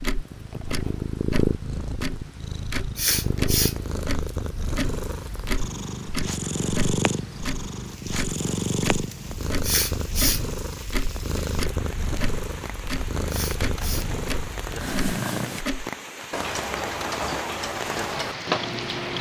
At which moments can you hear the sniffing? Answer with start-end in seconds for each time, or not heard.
3.0-3.8, 9.6-10.4, 13.2-14.1.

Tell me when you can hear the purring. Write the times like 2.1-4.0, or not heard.
0.0-15.7.